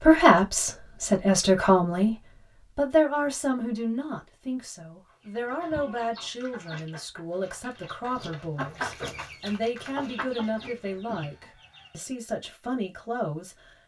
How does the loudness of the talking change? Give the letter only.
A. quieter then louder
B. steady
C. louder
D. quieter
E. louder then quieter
D.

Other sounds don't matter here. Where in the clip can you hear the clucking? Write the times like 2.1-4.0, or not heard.
5.0-12.1.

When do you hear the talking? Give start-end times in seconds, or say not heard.
0.0-13.7.